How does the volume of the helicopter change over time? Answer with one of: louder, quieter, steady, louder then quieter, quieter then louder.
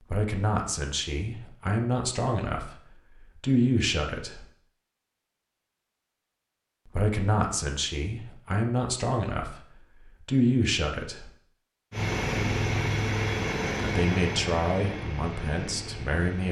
quieter.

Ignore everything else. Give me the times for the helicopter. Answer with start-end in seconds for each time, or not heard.
11.9-16.4.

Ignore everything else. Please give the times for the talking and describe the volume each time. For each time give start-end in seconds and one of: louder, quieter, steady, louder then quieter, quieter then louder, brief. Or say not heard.
0.1-4.5 quieter then louder
6.8-11.3 quieter then louder
13.8-16.4 brief.